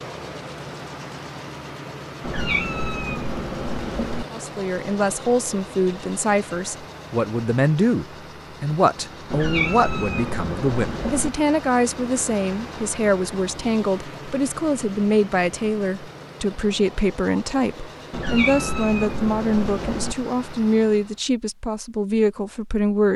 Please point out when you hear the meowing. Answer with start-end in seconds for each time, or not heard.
2.2-4.2, 9.3-11.3, 18.1-20.1.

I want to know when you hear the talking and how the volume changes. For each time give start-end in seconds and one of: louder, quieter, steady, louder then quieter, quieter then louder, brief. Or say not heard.
4.3-23.1 steady.